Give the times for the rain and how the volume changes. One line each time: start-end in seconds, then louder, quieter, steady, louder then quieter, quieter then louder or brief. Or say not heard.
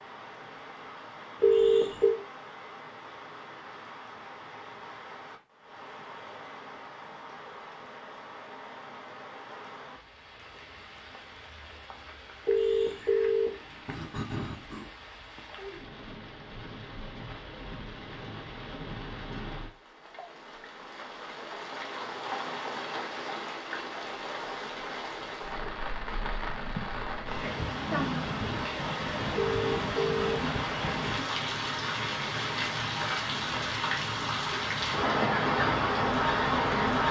0.0-37.0 louder.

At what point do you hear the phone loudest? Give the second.
2 s.